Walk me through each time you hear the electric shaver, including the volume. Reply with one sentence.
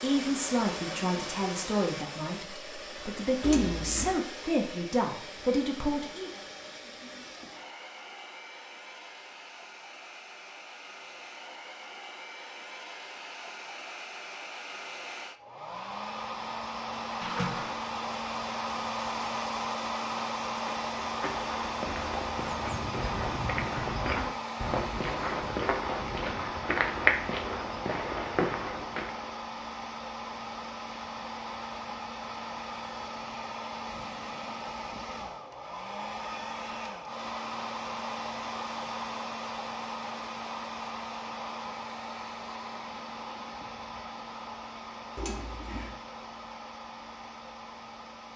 The electric shaver can't be heard in this clip.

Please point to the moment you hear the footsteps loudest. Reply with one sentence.
The loudest moment of the footsteps is at 27 seconds.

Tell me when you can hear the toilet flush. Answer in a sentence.
The toilet flush can be heard from 3.4 to 4.2 s, from 17.2 to 17.8 s and from 45.1 to 46.0 s.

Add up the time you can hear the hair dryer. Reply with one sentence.
The hair dryer can be heard for 48 seconds in total.